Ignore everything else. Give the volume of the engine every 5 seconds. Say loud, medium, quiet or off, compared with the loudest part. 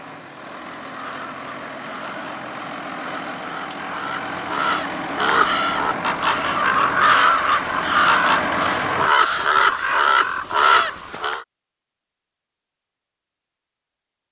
medium, loud, off.